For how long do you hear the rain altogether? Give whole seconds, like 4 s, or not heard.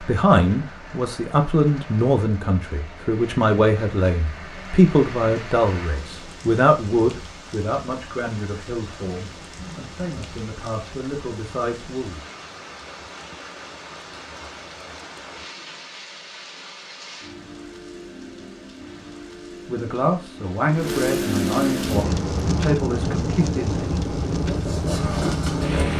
26 s.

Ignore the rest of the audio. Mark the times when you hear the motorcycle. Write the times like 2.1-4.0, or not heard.
21.8-25.9.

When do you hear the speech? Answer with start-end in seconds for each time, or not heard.
0.0-12.2, 19.6-23.9.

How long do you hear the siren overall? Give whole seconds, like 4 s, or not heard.
not heard.